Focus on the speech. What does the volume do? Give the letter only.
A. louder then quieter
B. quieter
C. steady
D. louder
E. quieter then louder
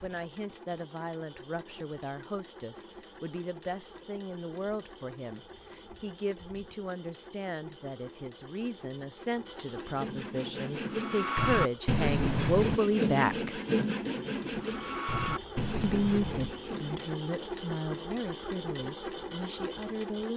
A.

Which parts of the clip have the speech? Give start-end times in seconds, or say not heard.
0.0-13.6, 15.8-20.3.